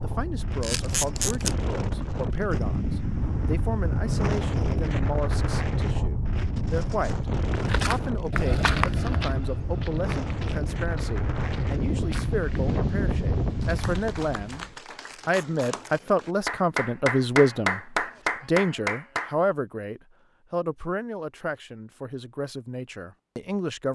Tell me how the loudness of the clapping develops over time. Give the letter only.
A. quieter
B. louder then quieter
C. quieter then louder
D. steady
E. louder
E.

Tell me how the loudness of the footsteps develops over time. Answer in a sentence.
The loudness of the footsteps goes down.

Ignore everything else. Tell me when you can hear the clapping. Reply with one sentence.
You can hear the clapping from 13.6 to 19.4 s.